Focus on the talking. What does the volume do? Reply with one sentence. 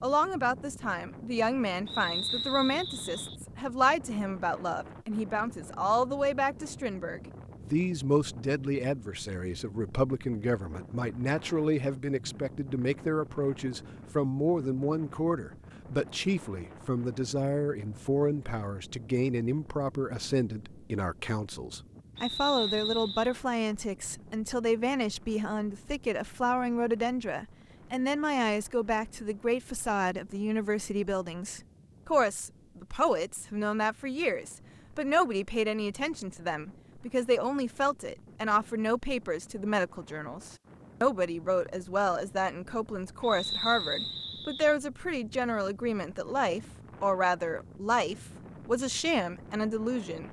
The loudness of the talking stays about the same.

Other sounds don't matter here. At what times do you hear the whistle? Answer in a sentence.
You can hear the whistle from 1.9 to 3.4 s, from 22.1 to 23.4 s and from 43.2 to 44.8 s.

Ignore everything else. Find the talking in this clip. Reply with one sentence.
The talking can be heard from 0.0 to 50.2 s.